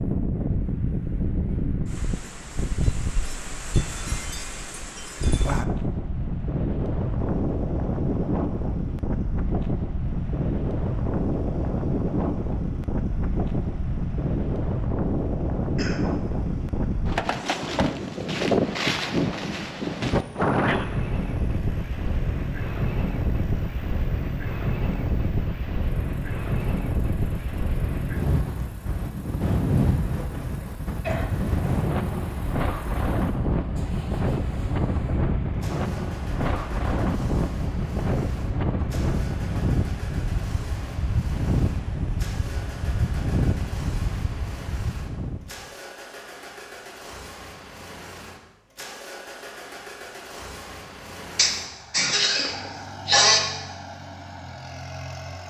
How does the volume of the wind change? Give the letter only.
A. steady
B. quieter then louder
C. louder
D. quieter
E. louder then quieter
A.